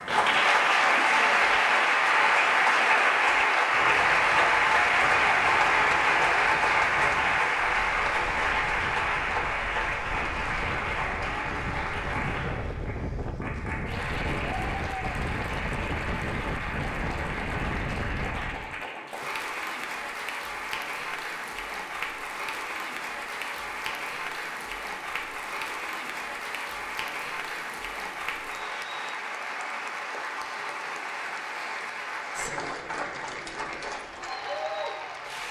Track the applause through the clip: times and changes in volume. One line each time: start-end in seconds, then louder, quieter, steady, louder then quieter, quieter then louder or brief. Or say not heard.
0.0-35.4 quieter.